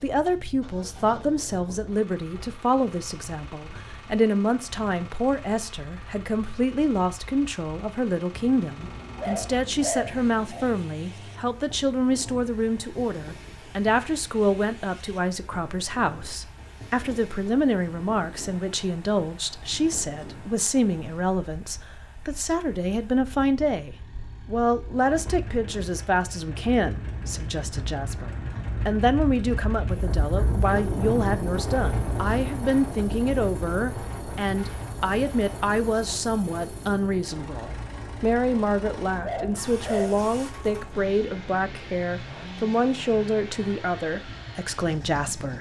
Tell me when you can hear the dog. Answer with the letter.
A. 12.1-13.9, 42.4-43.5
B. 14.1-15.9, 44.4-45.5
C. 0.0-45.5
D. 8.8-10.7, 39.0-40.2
D.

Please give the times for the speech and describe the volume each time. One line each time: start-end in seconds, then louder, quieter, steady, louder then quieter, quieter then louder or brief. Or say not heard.
0.0-45.5 steady.